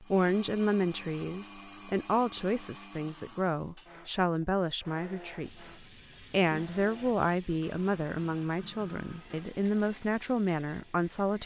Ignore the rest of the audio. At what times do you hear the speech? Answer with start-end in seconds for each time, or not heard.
0.0-5.7, 6.3-11.4.